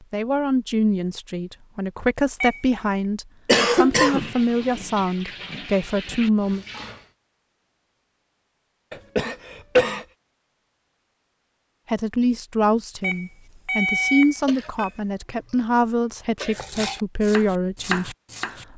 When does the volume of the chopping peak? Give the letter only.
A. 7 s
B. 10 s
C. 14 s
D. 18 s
D.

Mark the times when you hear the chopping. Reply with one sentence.
The chopping can be heard from 16.6 to 18.6 s.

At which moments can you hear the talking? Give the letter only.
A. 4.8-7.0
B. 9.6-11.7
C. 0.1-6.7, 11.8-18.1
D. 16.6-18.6
C.